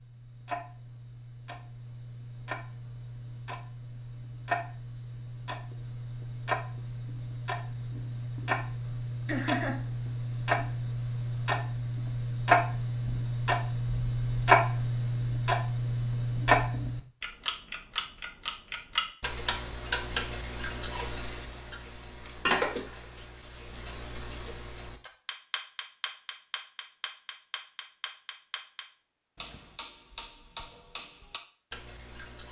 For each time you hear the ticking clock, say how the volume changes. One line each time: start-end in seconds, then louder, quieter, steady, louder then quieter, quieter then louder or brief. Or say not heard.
0.0-32.4 louder then quieter.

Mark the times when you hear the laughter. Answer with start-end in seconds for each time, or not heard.
9.2-9.8.